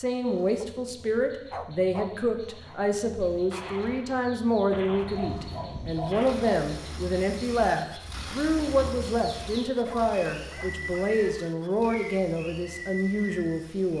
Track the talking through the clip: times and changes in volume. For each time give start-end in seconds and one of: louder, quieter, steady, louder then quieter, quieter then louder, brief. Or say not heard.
0.0-13.9 steady.